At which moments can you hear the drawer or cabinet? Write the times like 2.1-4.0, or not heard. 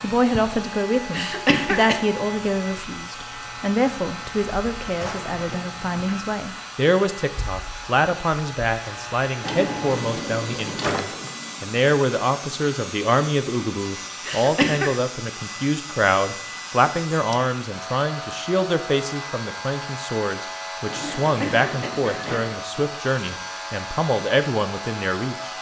5.0-5.8, 9.4-11.3, 20.9-22.4.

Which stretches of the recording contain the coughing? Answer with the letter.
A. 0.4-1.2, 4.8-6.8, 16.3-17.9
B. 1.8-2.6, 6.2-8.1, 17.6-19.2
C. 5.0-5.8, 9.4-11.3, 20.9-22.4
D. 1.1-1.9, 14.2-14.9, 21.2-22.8
D.